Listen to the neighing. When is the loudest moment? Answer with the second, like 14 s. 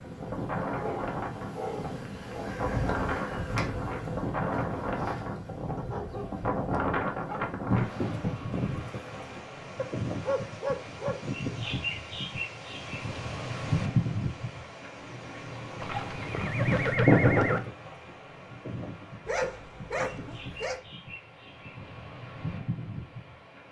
17 s.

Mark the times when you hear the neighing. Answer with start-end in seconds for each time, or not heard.
15.8-17.6.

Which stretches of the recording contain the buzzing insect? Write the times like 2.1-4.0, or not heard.
0.0-9.4.